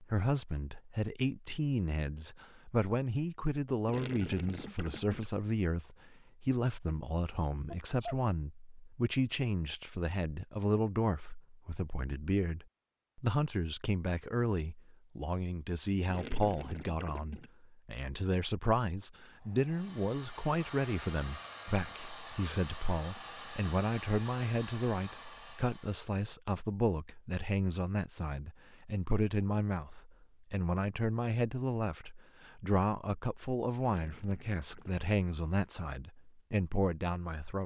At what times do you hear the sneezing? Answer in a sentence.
The sneezing can be heard from 7.7 to 8.2 s.